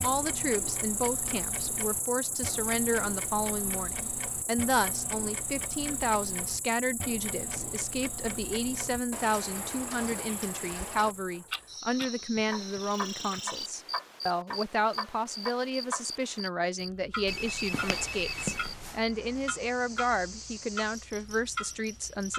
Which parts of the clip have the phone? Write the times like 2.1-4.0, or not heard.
17.2-19.1.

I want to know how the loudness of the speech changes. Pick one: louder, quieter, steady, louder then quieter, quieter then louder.
steady.